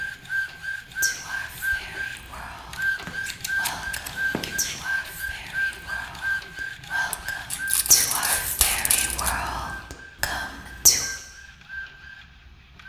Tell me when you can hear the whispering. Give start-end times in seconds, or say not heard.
1.0-11.1.